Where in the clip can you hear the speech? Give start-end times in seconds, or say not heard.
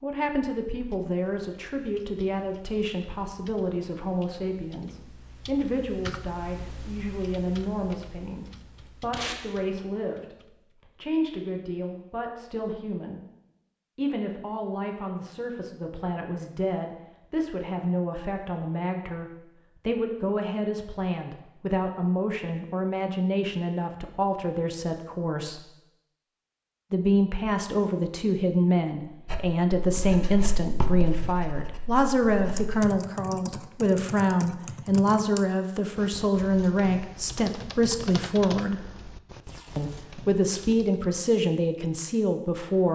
0.0-13.2, 13.9-25.6, 26.9-38.9, 39.8-42.9.